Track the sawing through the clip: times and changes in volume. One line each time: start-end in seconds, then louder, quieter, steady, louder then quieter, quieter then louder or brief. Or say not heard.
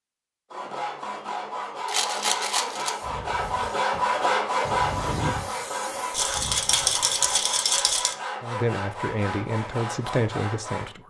0.5-10.9 louder then quieter.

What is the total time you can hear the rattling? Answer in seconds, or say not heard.
3 s.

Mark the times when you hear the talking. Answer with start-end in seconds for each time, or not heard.
8.4-11.0.